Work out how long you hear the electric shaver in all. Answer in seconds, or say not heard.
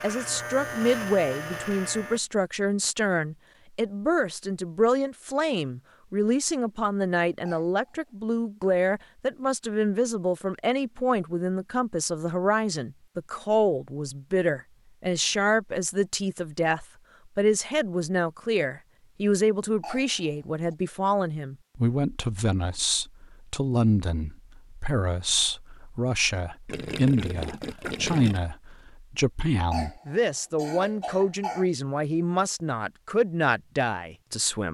2 s.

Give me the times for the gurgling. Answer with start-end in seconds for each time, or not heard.
26.6-28.4.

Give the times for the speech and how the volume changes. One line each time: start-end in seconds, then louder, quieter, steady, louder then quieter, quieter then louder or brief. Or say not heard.
0.0-34.6 steady.